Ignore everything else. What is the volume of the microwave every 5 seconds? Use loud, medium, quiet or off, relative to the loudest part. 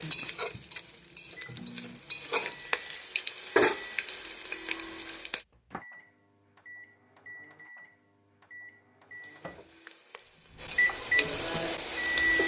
quiet, quiet, loud.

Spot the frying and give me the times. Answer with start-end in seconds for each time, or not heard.
0.0-5.4, 9.1-12.4.